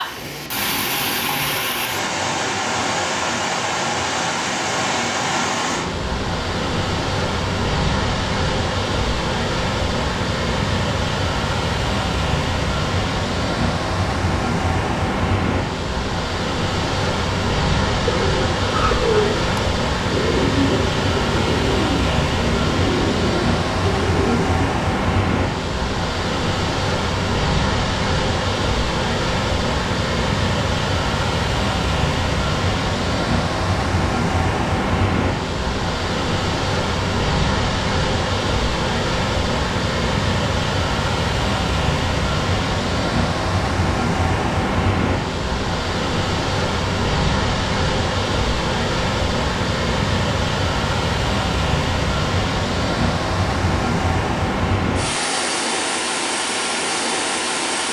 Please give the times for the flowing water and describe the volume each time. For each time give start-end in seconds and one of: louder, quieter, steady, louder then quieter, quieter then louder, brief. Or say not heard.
0.0-57.8 steady.